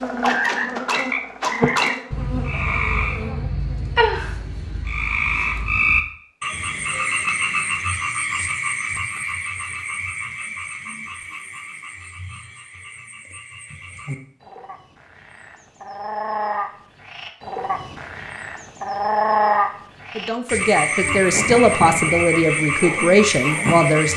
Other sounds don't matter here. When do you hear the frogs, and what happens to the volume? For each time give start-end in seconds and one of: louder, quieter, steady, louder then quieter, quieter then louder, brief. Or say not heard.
0.0-24.1 quieter then louder.